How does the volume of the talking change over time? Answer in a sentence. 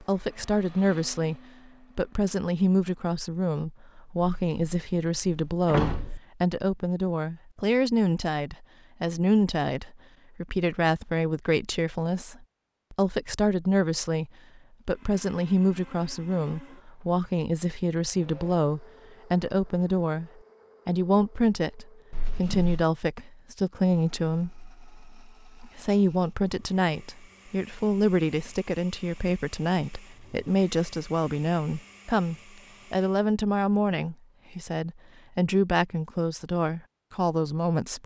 The volume of the talking stays about the same.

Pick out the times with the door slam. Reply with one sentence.
You can hear the door slam from 4.3 to 6.2 s and from 22.1 to 22.9 s.